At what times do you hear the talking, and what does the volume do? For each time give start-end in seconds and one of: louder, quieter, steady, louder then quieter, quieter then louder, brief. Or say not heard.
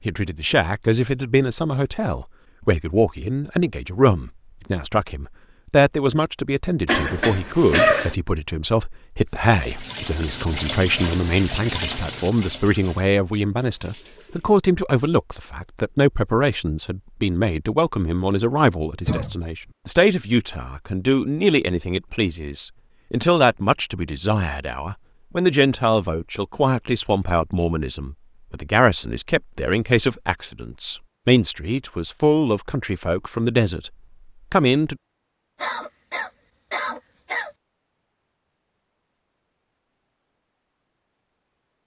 0.1-33.9 steady
34.5-35.0 brief.